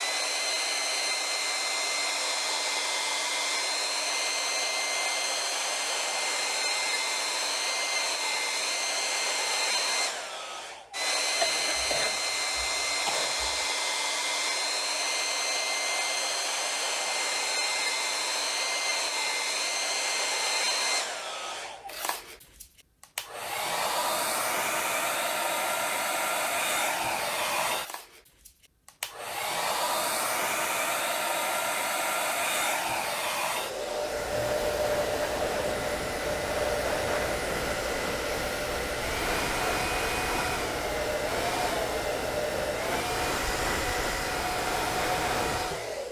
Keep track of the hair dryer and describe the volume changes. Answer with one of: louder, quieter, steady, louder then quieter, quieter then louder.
steady.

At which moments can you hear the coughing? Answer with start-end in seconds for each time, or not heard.
11.4-13.7.